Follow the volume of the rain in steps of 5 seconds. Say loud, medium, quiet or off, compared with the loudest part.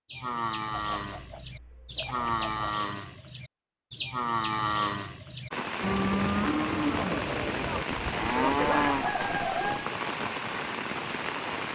off, loud, loud.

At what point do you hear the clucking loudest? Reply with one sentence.
The volume of the clucking peaks at 9 seconds.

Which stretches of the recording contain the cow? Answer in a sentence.
You can hear the cow from 0.1 to 9.1 s.